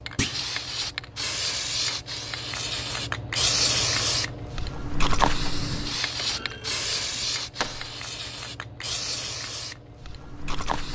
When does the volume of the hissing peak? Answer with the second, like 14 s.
4 s.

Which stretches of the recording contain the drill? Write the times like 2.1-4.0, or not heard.
not heard.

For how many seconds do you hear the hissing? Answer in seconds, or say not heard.
11 s.